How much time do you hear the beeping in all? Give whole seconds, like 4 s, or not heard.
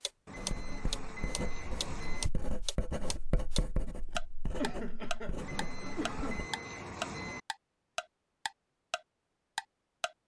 4 s.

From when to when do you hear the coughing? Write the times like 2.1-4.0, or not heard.
4.5-6.5.